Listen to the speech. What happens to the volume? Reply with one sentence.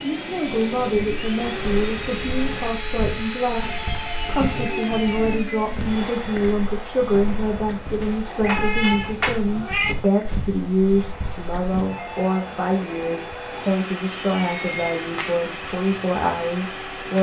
The volume of the speech stays about the same.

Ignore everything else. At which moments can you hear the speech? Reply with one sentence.
The speech can be heard from 0.0 to 17.1 s.